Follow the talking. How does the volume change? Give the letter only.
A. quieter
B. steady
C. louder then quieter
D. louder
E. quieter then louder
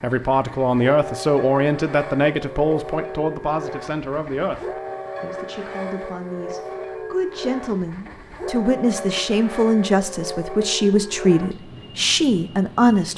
E.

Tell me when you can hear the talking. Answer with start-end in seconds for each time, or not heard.
0.0-13.1.